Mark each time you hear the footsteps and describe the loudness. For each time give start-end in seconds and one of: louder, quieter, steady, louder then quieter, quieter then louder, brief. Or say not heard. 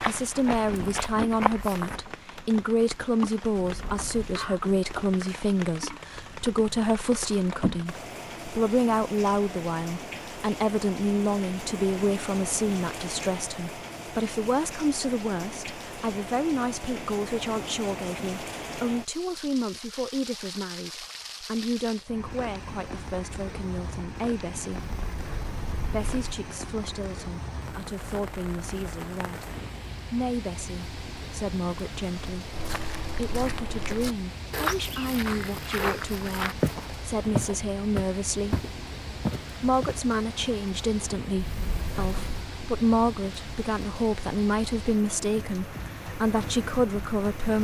0.0-2.0 brief
32.5-40.0 louder.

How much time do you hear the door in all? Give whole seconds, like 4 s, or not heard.
4 s.